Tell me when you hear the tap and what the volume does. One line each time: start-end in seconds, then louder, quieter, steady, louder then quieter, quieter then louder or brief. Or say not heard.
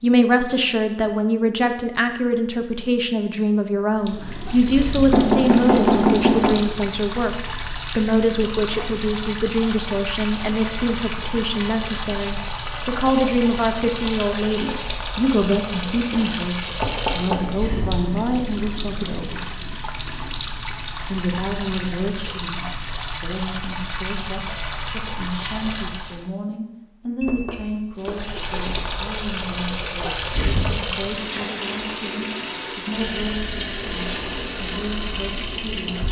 3.9-26.3 steady
27.9-36.0 steady.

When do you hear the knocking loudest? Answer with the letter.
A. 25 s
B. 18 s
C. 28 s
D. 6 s
D.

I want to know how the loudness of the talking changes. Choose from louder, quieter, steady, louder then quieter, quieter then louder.
quieter.